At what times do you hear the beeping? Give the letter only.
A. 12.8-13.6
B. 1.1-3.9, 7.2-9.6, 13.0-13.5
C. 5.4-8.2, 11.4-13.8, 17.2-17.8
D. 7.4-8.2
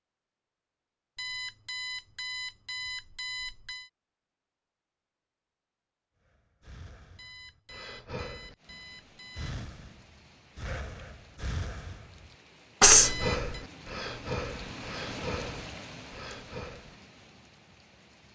B.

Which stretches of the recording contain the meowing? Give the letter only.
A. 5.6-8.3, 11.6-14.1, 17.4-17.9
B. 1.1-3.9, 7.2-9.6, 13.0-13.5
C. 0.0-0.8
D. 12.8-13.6
D.